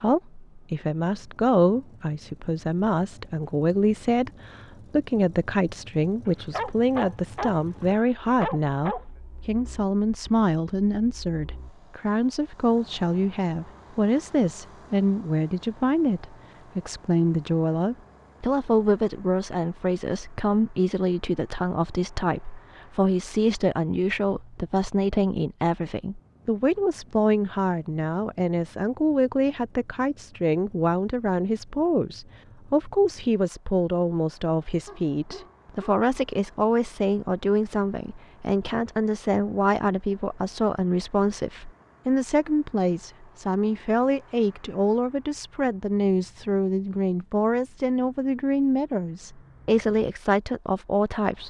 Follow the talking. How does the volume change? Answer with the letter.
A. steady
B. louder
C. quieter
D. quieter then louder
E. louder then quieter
A.